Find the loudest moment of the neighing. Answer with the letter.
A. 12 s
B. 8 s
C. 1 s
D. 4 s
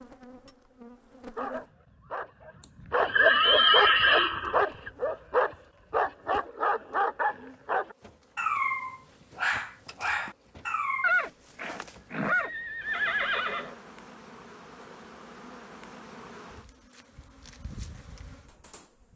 D.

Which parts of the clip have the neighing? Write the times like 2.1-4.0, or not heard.
3.0-4.9, 11.0-13.8.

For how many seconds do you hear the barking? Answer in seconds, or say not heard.
10 s.